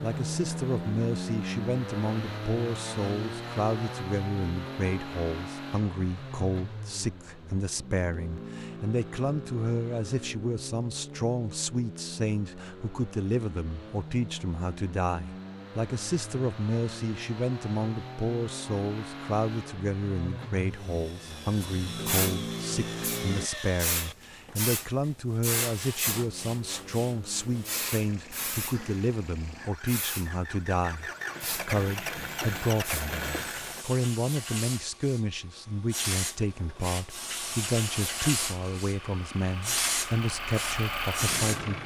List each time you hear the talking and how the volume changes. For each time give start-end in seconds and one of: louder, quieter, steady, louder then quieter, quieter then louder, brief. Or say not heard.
0.0-41.8 steady.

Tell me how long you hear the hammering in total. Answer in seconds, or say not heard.
not heard.